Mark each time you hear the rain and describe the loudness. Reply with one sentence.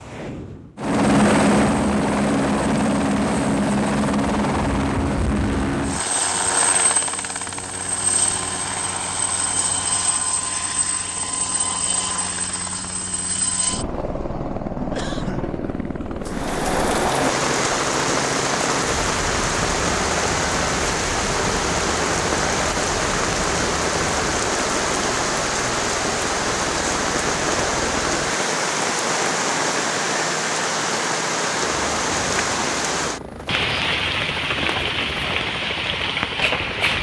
The rain can be heard from 16.2 to 36.9 s, at a steady volume.